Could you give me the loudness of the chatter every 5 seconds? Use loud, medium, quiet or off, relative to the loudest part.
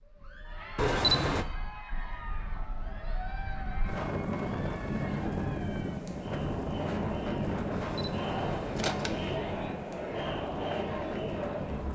medium, loud, loud.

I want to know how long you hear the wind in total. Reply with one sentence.
You can hear the wind for 12 seconds altogether.